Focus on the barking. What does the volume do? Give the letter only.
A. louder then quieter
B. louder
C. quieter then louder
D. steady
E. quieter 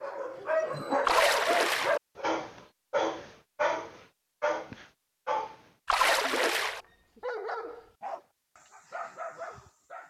E.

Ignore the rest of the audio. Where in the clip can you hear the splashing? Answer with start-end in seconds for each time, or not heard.
1.1-2.0, 5.8-6.8.